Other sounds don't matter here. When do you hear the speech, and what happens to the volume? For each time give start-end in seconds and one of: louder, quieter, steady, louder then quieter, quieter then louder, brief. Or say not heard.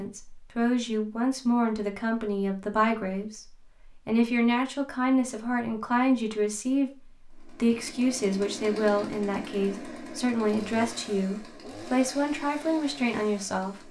0.0-13.8 steady.